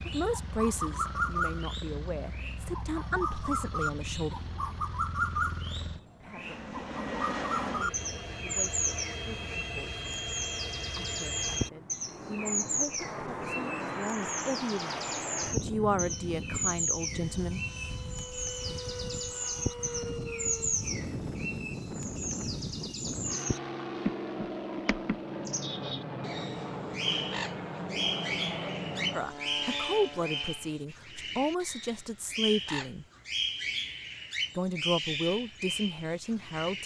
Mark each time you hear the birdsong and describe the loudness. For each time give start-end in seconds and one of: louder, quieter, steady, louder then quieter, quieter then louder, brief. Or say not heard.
0.0-36.8 steady.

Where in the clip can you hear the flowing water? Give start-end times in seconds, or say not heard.
not heard.